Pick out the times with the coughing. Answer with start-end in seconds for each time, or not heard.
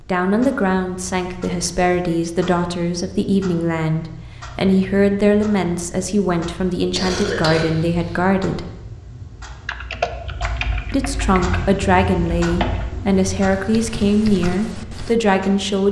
7.0-8.2.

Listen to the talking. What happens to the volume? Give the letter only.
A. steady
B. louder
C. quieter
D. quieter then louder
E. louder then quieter
A.